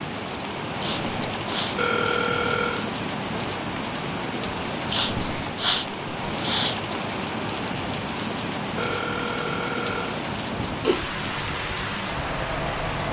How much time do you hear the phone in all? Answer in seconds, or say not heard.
3 s.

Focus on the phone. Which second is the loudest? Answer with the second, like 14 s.
2 s.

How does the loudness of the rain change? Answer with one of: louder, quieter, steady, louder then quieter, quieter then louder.
steady.